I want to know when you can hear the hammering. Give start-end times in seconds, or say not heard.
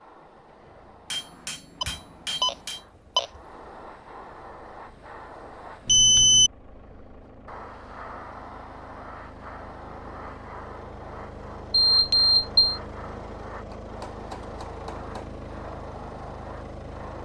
1.1-2.9, 13.7-15.2.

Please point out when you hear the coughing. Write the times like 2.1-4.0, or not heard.
not heard.